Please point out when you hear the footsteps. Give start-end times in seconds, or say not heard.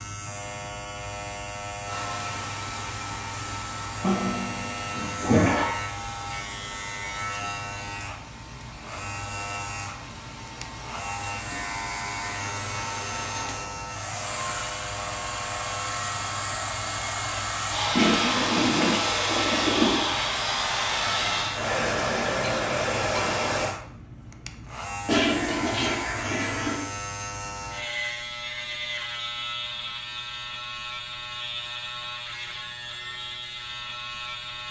not heard.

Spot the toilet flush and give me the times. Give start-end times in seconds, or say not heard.
4.0-5.7, 17.9-20.1, 25.1-26.8.